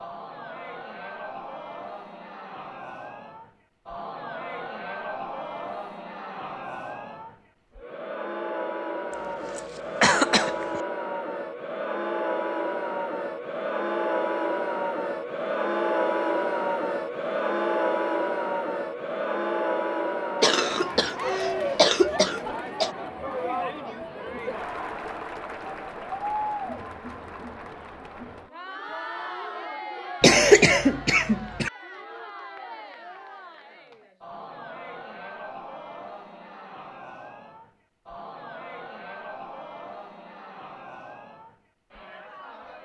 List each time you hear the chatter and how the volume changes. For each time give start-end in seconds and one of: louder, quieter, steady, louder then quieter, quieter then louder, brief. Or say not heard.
0.0-42.8 louder then quieter.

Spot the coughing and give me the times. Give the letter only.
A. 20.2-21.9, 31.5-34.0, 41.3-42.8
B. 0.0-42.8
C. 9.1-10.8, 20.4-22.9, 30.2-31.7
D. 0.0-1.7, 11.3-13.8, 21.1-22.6
C.